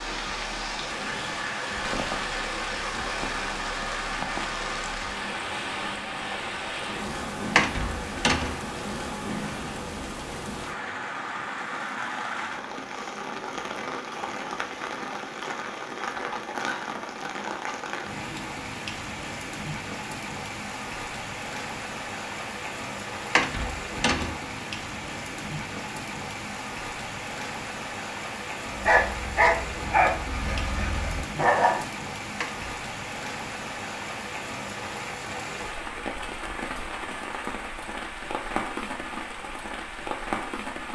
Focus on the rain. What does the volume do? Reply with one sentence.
The volume of the rain stays about the same.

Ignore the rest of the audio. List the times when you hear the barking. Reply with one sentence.
You can hear the barking from 28.7 to 31.9 s.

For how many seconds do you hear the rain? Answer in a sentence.
You can hear the rain for 41 seconds altogether.